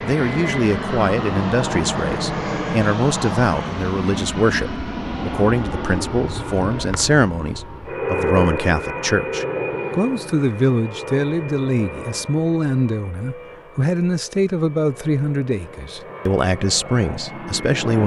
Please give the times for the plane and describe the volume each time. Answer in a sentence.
You can hear the plane from 0.0 to 18.0 s, getting quieter.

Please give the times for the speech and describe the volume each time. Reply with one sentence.
The speech can be heard from 0.0 to 18.0 s, at a steady volume.